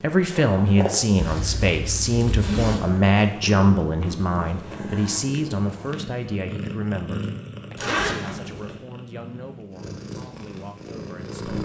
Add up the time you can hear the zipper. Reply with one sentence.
You can hear the zipper for 3 seconds altogether.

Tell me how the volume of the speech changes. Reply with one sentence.
The loudness of the speech goes down.